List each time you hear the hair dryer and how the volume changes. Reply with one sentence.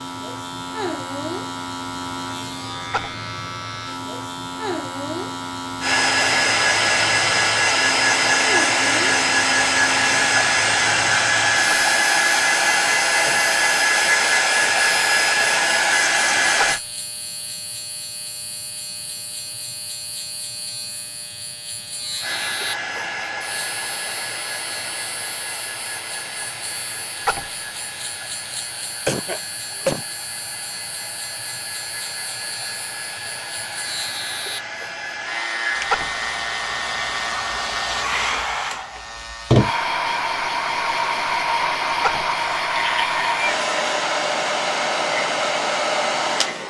You can hear the hair dryer from 5.8 to 16.8 s, at a steady volume; and from 22.2 to 46.6 s, getting quieter then louder.